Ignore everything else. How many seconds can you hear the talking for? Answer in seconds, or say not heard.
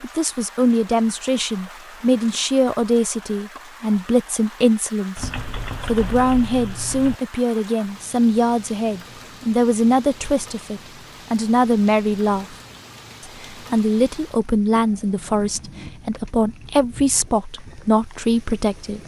18 s.